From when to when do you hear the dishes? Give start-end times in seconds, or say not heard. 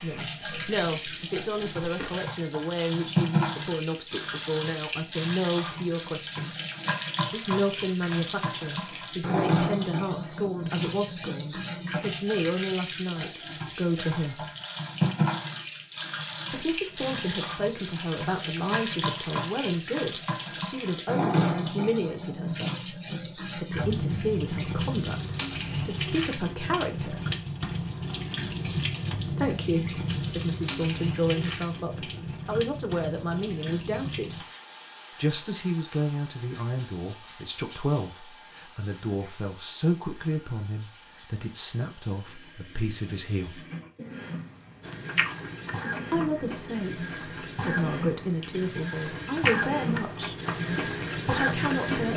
not heard.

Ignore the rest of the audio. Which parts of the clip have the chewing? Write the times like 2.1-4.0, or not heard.
0.2-2.2, 44.8-52.1.